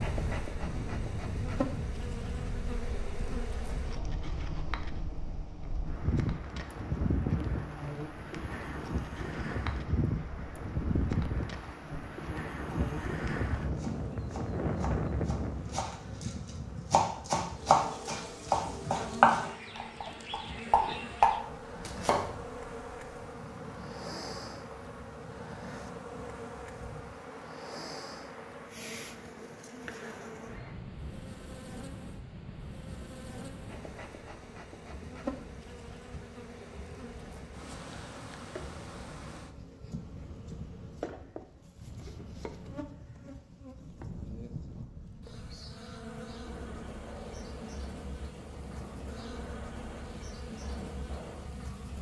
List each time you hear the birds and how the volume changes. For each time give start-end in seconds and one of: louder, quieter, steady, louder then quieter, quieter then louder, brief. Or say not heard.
not heard.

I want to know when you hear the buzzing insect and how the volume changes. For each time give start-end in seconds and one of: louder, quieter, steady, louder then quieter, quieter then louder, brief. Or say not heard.
0.0-51.9 steady.